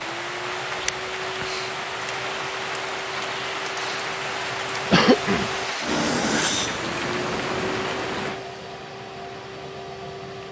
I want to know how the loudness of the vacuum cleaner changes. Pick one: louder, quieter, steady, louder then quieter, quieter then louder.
louder then quieter.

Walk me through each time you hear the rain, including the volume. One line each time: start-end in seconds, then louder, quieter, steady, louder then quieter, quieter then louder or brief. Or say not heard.
0.0-10.4 quieter.